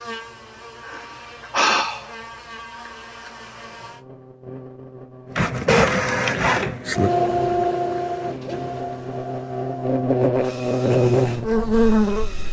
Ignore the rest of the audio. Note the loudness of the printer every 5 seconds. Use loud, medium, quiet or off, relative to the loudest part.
off, loud, quiet.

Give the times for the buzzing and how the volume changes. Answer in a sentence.
The buzzing can be heard from 0.0 to 12.4 s, getting louder.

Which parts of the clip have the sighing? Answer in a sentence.
The sighing can be heard from 0.8 to 2.1 s.